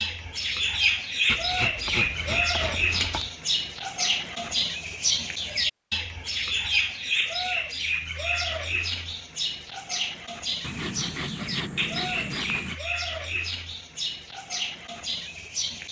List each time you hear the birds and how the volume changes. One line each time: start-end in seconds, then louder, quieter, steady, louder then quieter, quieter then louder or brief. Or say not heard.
0.0-15.8 quieter.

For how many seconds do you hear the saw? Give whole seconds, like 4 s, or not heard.
4 s.